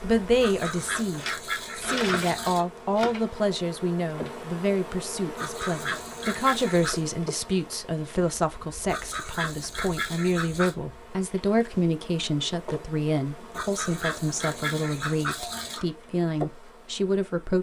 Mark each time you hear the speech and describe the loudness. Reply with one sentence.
You can hear the speech from 0.0 to 17.5 s, at a steady volume.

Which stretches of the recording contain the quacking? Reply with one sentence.
The quacking can be heard from 0.4 to 2.6 s, from 5.3 to 7.0 s, from 8.8 to 10.8 s and from 13.6 to 15.8 s.